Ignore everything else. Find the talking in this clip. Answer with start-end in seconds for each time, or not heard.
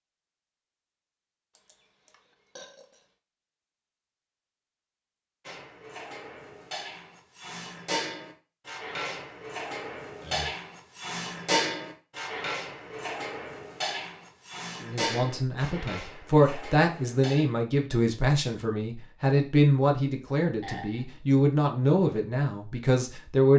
14.8-23.5.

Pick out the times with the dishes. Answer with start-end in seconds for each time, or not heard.
5.5-17.4.